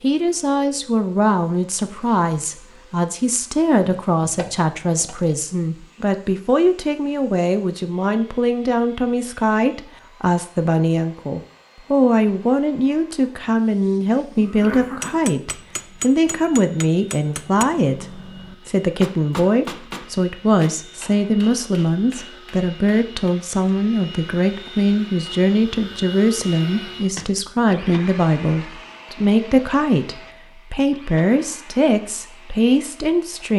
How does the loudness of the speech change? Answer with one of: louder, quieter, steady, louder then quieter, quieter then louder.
steady.